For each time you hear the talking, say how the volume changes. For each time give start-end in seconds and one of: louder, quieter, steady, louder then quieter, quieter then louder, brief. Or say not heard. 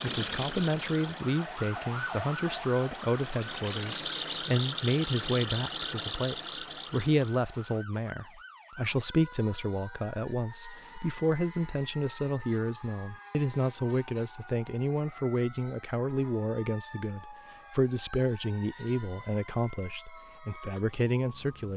0.0-21.7 steady.